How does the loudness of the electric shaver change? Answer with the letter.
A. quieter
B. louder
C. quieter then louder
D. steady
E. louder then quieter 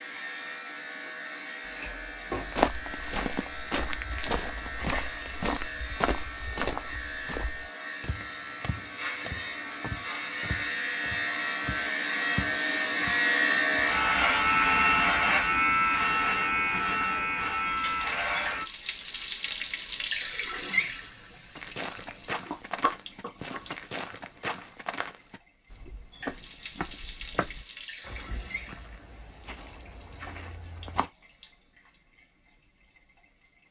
B.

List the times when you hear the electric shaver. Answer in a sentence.
The electric shaver can be heard from 0.0 to 18.6 s.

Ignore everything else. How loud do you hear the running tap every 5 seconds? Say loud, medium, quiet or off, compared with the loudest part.
off, off, off, loud, loud, medium, quiet.